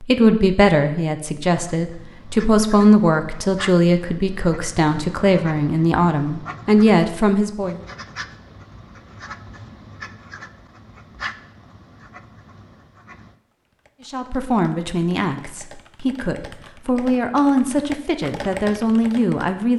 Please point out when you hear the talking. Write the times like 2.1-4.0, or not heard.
0.0-7.8, 14.1-19.7.